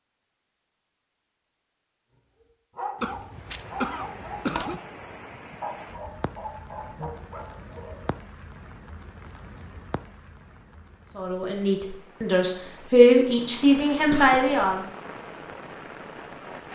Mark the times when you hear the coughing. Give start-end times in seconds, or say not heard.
3.0-4.8, 13.9-14.8.